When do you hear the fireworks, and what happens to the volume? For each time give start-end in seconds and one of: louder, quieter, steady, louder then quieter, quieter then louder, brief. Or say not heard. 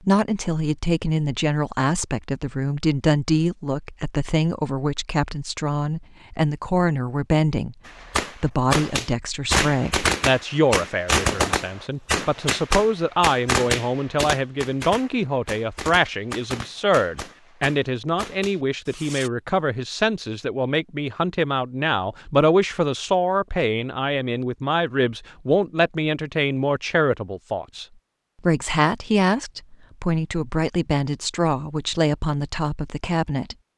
7.8-19.3 quieter.